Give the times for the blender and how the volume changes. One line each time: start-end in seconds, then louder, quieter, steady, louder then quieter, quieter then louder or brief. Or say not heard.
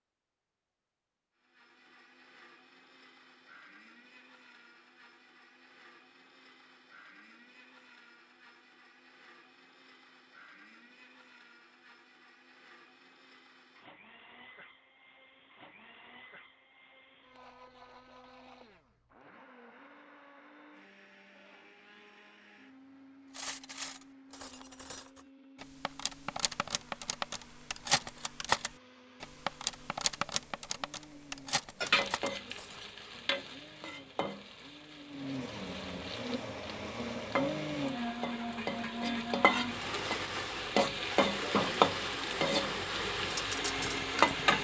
1.4-44.5 louder.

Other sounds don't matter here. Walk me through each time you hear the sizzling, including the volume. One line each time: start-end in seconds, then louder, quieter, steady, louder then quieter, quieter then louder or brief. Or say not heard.
31.8-44.5 quieter then louder.